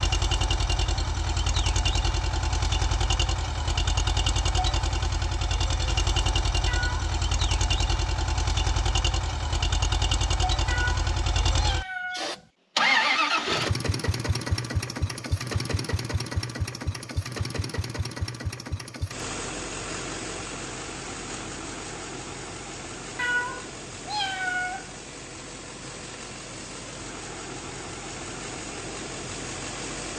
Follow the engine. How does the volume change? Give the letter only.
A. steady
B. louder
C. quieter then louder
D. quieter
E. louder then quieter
D.